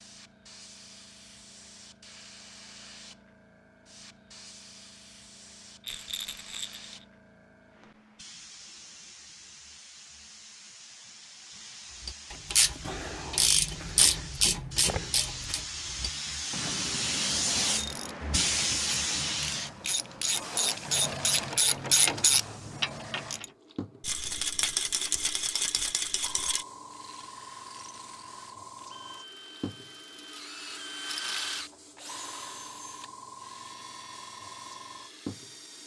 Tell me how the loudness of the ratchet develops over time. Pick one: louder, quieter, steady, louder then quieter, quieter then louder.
quieter then louder.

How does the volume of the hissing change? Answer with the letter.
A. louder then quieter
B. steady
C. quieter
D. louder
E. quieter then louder
A.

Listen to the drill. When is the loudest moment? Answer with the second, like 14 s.
31 s.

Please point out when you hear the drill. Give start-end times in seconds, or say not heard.
26.9-35.8.